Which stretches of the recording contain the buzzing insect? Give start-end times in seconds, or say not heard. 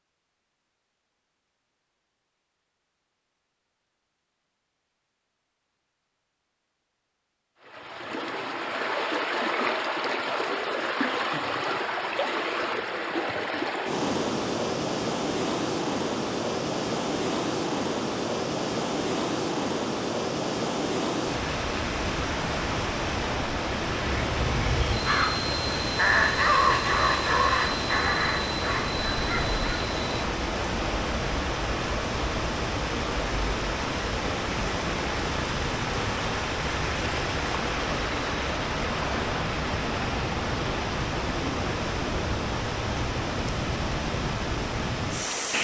not heard.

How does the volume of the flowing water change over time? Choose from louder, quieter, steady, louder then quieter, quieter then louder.
steady.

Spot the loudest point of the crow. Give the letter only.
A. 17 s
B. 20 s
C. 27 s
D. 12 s
C.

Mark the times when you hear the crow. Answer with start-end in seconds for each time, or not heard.
23.9-29.6.